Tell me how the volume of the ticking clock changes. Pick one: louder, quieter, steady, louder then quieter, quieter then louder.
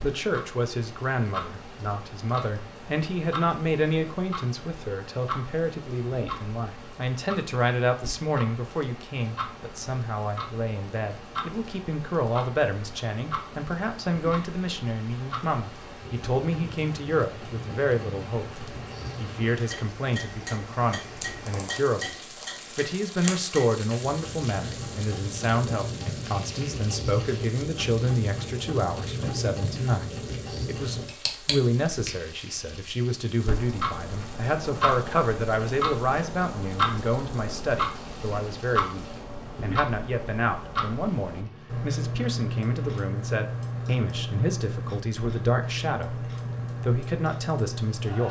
louder.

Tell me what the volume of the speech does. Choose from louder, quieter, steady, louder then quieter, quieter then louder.
steady.